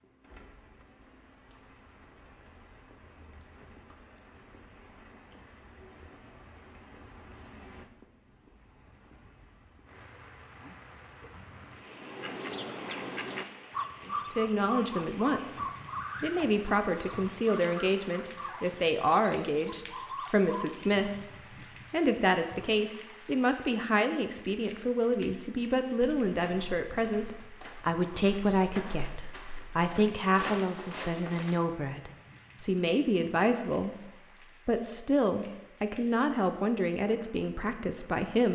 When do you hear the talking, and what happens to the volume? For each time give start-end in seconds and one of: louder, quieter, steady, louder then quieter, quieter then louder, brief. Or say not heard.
14.1-21.1 steady
21.9-38.5 steady.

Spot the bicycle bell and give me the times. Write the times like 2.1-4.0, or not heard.
not heard.